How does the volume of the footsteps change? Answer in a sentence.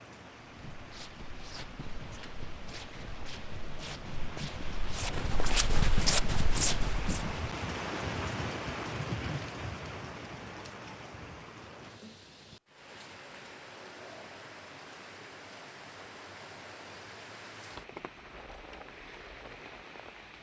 The volume of the footsteps goes up.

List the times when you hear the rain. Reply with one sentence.
You can hear the rain from 0.0 to 20.3 s.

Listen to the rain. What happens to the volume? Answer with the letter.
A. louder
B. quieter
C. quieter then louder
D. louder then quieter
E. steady
D.